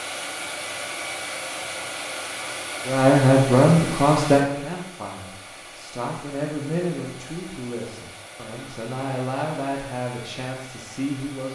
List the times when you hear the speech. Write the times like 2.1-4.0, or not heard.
2.9-11.5.